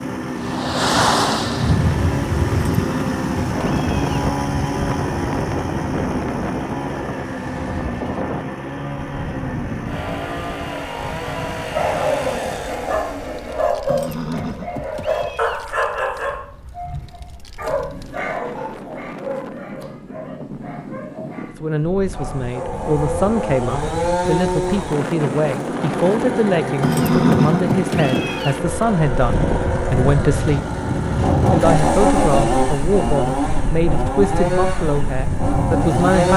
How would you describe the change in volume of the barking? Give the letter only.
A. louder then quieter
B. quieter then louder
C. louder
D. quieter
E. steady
D.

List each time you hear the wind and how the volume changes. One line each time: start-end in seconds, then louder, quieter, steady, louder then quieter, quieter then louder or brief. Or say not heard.
0.2-36.3 quieter then louder.